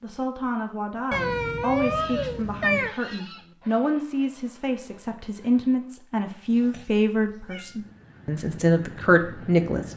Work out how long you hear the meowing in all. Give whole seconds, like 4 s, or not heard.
3 s.